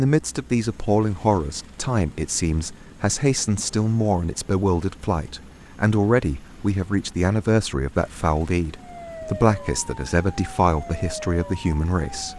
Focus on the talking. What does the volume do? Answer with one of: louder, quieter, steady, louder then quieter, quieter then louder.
steady.